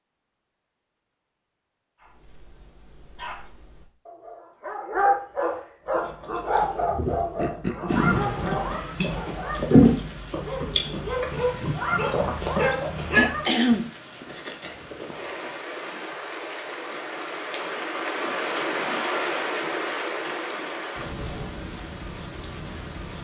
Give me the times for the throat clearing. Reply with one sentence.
The throat clearing can be heard from 7.3 to 8.3 s and from 13.2 to 13.8 s.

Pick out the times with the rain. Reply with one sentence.
You can hear the rain from 7.8 to 23.1 s.